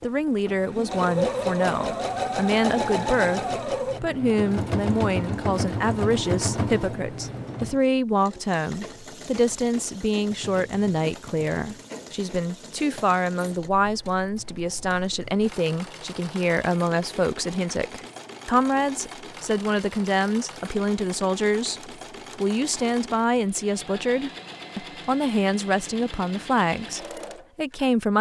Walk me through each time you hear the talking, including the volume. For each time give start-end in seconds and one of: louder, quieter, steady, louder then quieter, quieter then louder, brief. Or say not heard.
0.0-28.1 steady.